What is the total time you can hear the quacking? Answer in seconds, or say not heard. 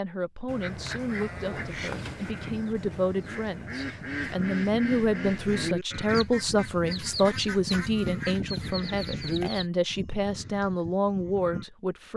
9 s.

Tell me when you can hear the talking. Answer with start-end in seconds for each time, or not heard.
0.0-12.1.